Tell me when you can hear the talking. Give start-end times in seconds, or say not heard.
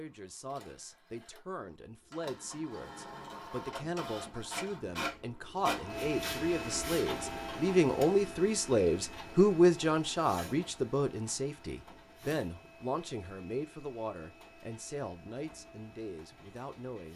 0.0-17.1.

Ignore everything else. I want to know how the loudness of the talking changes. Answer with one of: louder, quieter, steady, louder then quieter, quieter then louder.
louder then quieter.